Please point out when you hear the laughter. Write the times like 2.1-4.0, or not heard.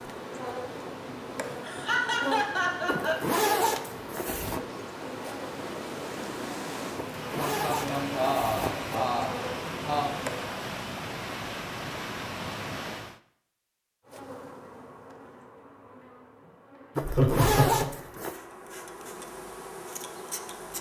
1.6-3.1, 7.3-10.1, 16.9-17.9.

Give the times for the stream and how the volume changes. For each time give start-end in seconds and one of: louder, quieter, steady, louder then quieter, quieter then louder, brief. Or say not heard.
0.0-13.2 louder.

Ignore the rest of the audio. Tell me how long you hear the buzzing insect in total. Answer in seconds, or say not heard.
17 s.